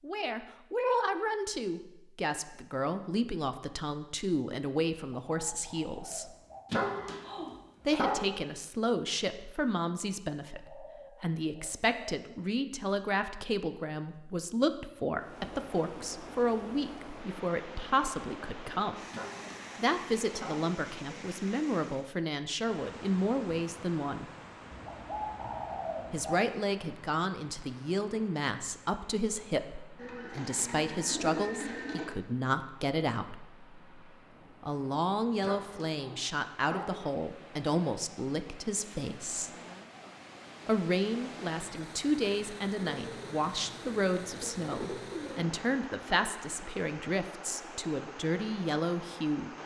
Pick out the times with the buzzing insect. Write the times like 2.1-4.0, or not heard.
not heard.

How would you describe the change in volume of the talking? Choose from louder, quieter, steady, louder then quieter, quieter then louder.
steady.